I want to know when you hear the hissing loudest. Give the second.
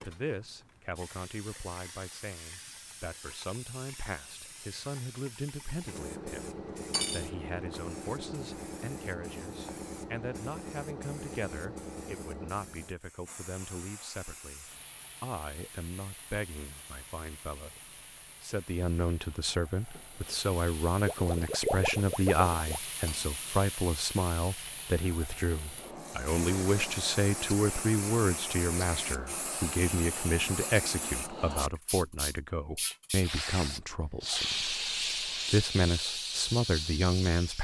35 s.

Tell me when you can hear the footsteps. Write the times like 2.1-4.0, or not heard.
not heard.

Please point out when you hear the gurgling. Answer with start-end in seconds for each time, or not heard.
21.1-22.8.